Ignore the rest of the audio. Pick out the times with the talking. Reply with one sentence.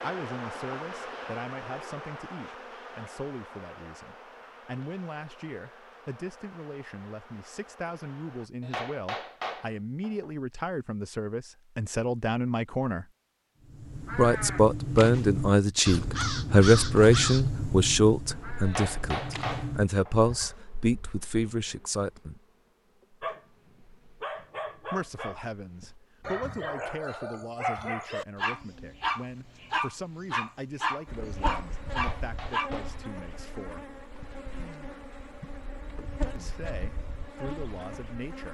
You can hear the talking from 0.0 to 13.1 s, from 14.1 to 22.4 s, from 24.9 to 33.9 s and from 36.4 to 38.5 s.